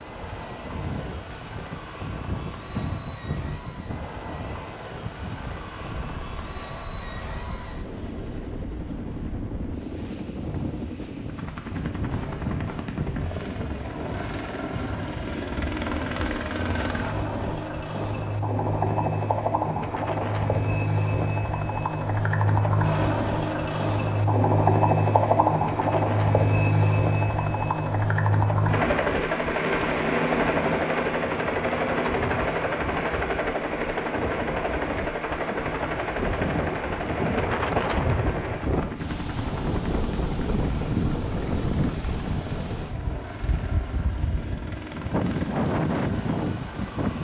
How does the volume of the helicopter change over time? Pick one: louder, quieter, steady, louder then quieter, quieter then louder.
louder then quieter.